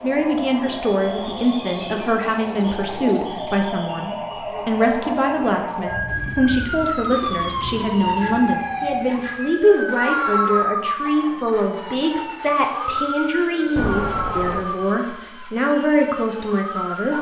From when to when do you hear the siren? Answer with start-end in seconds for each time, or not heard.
0.0-17.1.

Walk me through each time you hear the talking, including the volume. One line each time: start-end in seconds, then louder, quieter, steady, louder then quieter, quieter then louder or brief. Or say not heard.
0.0-17.1 steady.